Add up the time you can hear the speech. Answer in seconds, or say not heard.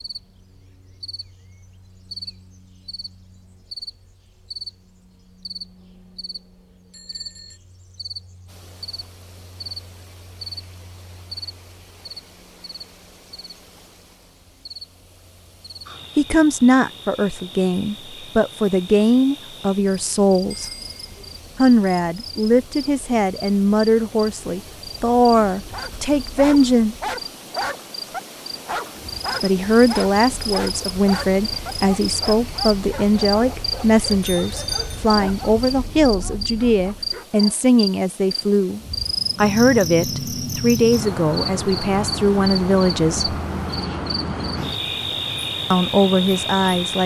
25 s.